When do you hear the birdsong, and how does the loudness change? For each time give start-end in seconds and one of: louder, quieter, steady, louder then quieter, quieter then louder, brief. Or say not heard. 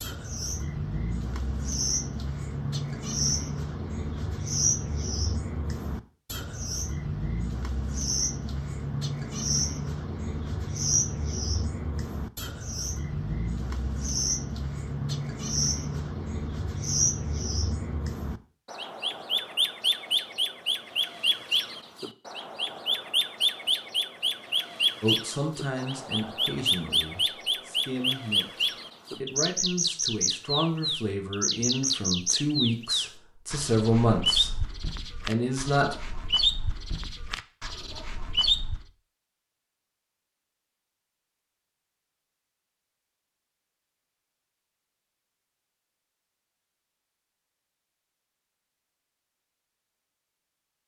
0.0-38.9 steady.